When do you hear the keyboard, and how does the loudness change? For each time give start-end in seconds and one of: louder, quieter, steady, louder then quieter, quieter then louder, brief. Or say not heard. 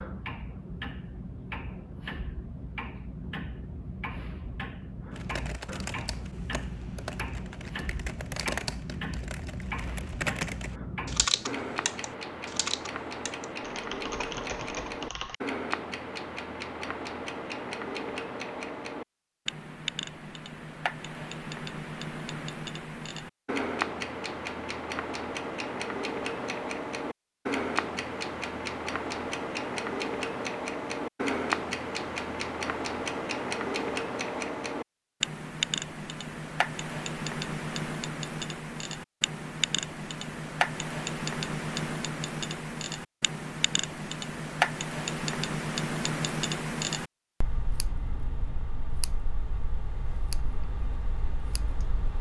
5.1-15.3 louder then quieter.